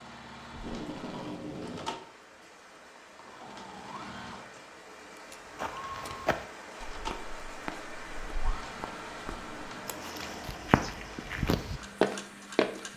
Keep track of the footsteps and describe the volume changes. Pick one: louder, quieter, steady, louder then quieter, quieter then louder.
quieter then louder.